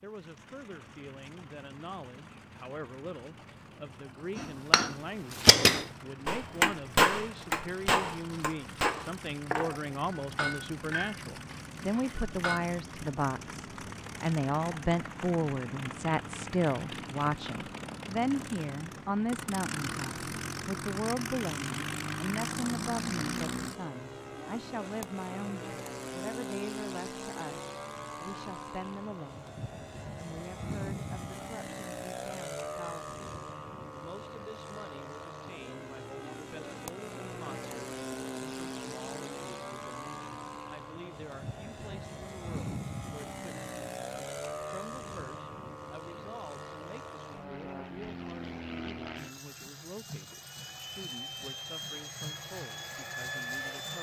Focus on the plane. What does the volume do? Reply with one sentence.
The volume of the plane goes up.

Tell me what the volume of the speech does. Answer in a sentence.
The loudness of the speech goes up, then down.